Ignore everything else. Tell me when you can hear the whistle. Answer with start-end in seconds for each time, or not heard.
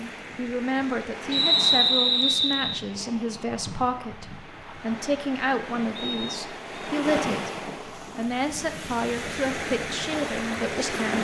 1.3-2.8, 6.0-6.9.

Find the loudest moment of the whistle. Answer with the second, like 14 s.
2 s.